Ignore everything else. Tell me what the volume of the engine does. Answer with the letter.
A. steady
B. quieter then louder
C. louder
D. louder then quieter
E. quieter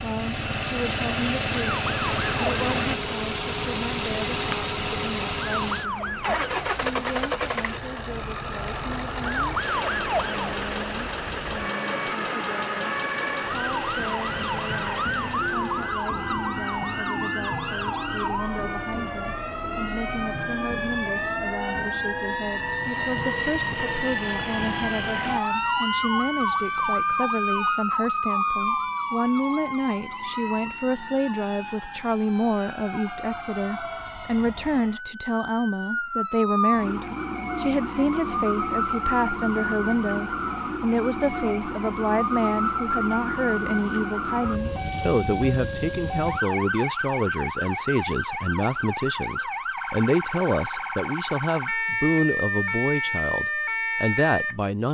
E.